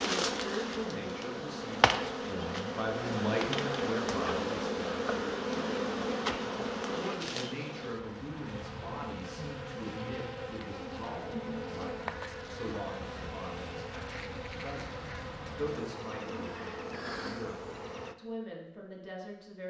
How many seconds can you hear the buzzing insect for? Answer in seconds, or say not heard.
18 s.